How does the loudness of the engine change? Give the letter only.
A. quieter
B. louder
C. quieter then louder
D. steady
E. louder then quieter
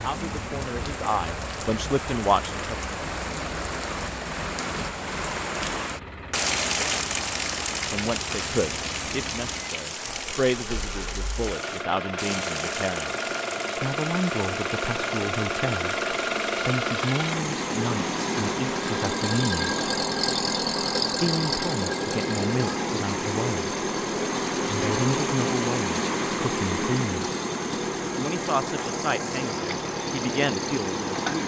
B.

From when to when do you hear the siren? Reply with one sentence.
The siren can't be heard in this clip.